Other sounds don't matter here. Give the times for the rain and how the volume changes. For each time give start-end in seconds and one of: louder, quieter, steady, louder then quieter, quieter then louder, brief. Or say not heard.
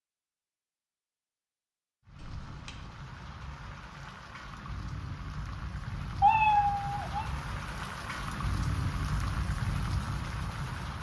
2.0-10.9 louder.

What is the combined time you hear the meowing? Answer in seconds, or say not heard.
2 s.